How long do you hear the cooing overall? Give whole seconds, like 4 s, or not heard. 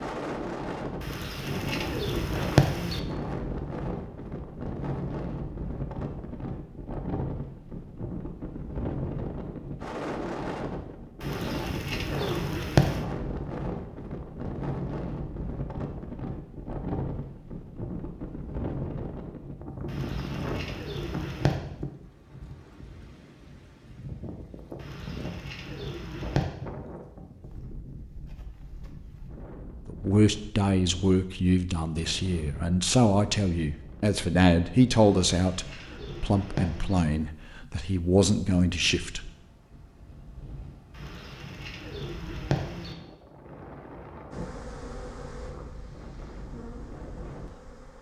11 s.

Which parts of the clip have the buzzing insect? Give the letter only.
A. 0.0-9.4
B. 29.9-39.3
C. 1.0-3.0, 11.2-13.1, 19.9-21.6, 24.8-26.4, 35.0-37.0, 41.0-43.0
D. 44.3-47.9
D.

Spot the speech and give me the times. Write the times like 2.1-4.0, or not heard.
29.9-39.3.